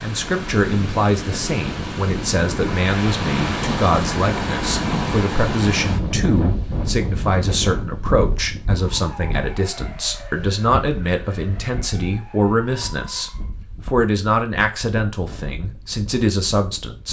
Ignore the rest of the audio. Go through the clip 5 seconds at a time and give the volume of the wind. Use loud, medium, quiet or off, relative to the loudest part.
loud, loud, quiet, quiet.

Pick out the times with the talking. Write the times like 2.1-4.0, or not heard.
0.0-17.0.